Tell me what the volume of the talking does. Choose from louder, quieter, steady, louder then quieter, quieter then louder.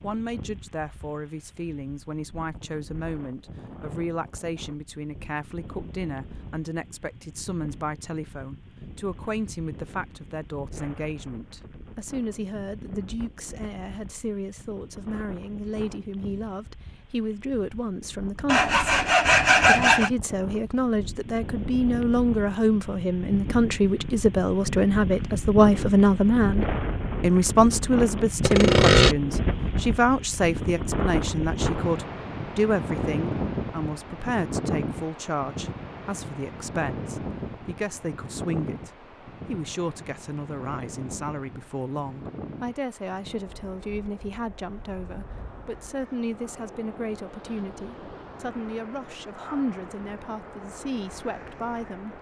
louder then quieter.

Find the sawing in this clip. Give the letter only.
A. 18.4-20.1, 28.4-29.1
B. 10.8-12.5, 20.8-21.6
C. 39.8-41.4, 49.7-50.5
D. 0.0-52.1
A.